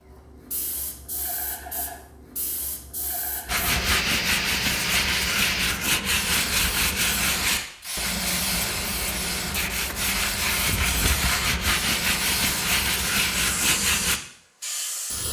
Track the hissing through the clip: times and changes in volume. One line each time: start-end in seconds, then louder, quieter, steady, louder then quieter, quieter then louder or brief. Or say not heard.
0.0-15.2 louder.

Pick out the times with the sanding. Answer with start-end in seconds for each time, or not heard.
3.5-14.2.